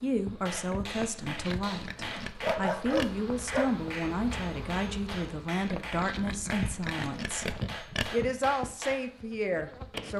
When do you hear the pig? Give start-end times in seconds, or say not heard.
0.7-3.5, 5.7-8.4.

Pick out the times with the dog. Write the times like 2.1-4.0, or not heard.
2.4-3.8.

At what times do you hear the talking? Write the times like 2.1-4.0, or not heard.
0.0-10.1.